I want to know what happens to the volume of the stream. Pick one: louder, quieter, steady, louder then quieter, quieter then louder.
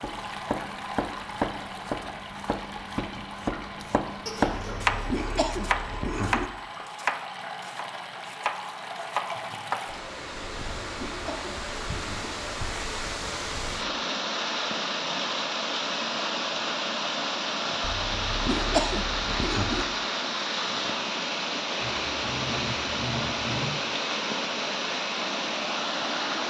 louder.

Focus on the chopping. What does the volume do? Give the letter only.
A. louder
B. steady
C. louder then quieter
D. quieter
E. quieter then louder
C.